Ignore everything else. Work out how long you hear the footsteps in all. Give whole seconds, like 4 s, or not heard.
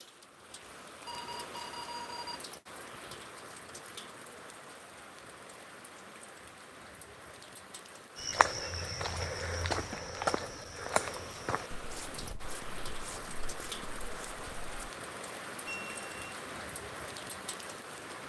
7 s.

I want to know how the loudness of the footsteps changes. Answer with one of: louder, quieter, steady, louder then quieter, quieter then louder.
quieter.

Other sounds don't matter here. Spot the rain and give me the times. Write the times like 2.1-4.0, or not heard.
0.0-18.2.